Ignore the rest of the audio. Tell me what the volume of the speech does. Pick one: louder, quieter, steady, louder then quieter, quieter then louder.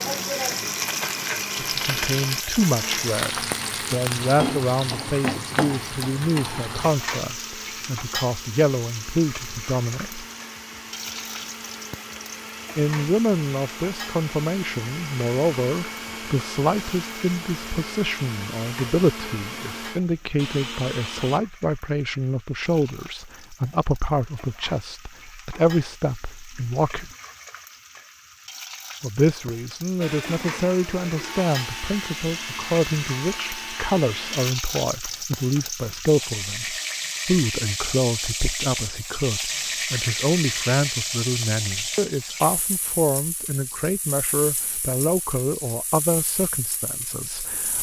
steady.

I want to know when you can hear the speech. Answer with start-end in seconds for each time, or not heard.
1.6-10.2, 12.8-27.1, 29.0-47.7.